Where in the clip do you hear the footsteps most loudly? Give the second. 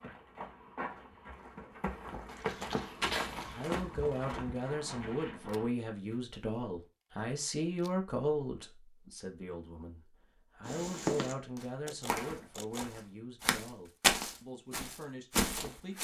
14 s.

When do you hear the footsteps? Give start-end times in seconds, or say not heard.
0.0-6.2, 10.7-16.0.